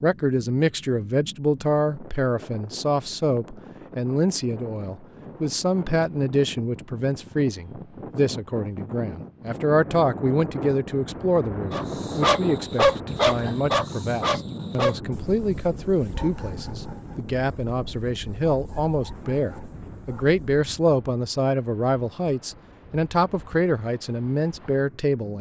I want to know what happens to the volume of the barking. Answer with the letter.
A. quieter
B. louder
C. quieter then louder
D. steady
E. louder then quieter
A.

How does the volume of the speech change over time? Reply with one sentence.
The volume of the speech stays about the same.